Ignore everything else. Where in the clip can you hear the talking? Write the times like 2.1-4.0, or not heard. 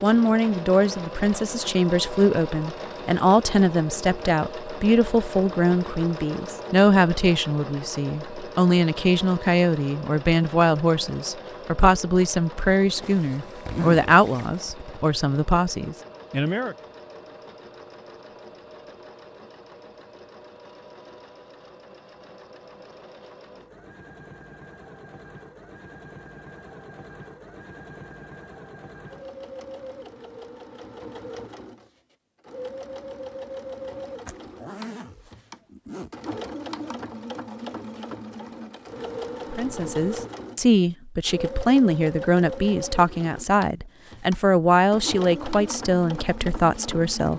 0.0-16.8, 39.5-47.3.